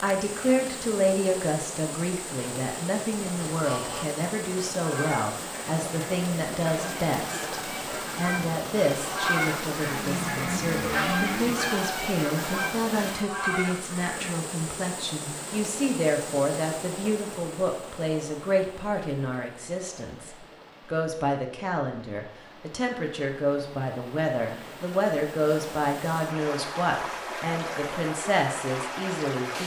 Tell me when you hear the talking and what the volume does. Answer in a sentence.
You can hear the talking from 0.0 to 29.6 s, at a steady volume.